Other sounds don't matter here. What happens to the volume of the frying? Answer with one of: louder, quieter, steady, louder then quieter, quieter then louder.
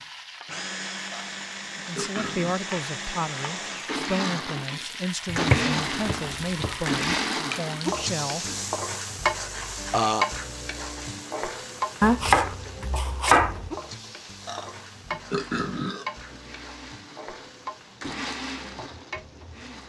louder then quieter.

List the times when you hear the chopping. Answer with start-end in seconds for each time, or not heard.
5.2-7.0, 12.0-13.7.